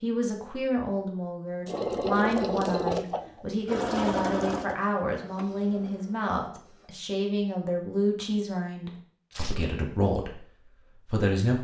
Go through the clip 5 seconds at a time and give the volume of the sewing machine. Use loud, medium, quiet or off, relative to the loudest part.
loud, quiet, off.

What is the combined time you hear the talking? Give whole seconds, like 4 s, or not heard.
11 s.